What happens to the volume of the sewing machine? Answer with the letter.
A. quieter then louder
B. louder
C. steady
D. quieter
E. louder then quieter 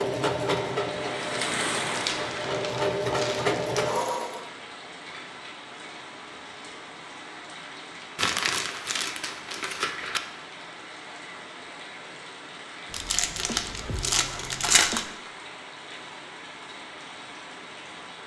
A.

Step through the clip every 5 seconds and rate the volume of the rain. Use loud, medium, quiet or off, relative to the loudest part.
loud, medium, medium, medium.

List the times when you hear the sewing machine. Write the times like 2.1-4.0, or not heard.
0.0-4.5.